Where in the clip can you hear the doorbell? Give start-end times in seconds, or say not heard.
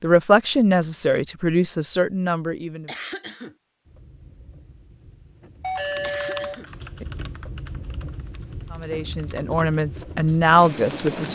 5.6-7.0.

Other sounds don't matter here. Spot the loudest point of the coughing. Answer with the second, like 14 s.
3 s.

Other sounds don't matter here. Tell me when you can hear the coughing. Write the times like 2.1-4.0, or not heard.
2.9-3.5, 6.0-6.7.